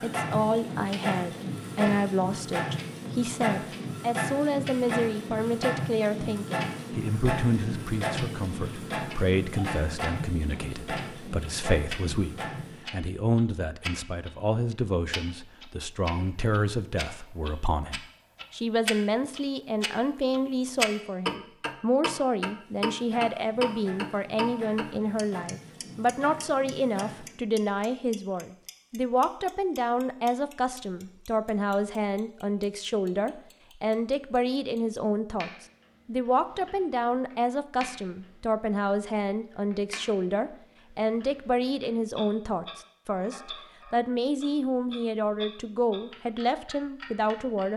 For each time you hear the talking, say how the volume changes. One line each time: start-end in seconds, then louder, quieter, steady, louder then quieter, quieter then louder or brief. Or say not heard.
0.0-47.7 steady.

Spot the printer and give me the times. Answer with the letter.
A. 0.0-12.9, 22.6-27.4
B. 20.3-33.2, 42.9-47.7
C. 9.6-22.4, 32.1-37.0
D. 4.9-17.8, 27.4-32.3
A.